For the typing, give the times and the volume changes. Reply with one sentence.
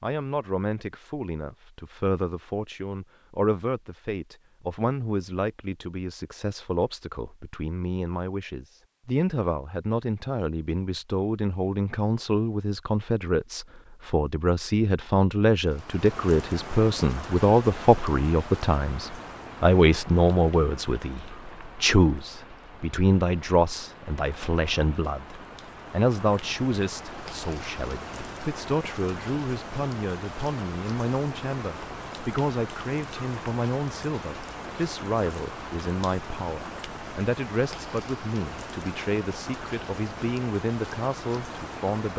You can't hear the typing here.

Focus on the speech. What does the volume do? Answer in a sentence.
The loudness of the speech goes up, then down.